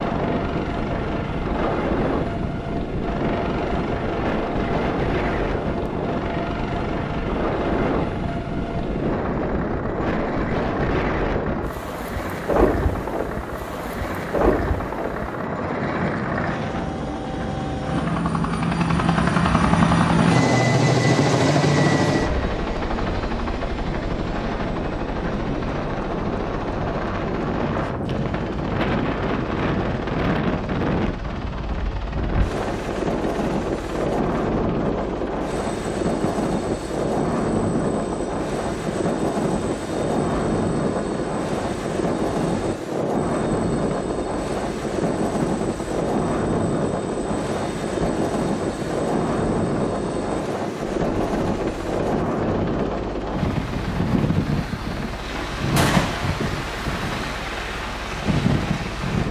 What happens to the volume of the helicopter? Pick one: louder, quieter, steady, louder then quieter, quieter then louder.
louder then quieter.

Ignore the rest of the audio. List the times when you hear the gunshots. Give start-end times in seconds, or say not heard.
55.8-56.2.